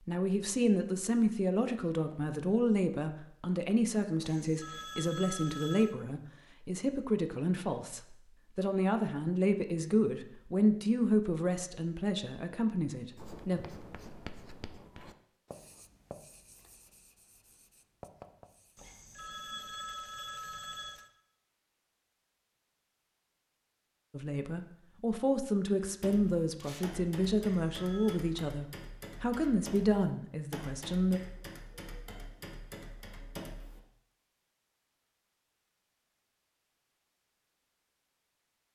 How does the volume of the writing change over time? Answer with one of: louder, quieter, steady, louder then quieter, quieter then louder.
quieter then louder.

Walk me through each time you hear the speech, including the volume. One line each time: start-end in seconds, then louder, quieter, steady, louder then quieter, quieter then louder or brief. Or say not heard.
0.1-13.6 steady
24.1-31.2 steady.